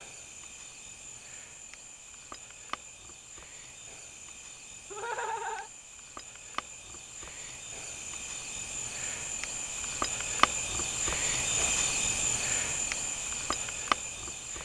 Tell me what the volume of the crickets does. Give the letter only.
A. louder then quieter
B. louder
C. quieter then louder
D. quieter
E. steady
B.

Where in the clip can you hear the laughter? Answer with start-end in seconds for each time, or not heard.
4.9-5.7.